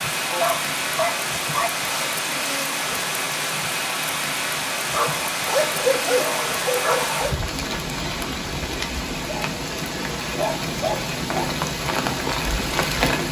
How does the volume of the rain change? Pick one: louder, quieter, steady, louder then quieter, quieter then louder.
steady.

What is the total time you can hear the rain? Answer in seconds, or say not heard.
13 s.